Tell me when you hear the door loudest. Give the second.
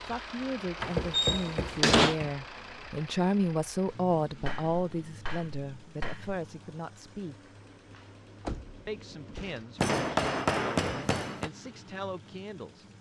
2 s.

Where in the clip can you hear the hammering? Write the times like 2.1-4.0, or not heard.
0.8-2.4, 4.5-6.4, 9.8-11.5.